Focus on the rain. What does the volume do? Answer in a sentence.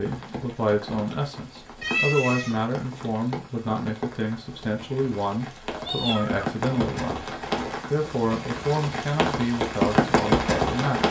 The loudness of the rain goes up.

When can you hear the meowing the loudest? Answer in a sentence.
The volume of the meowing peaks at 2 seconds.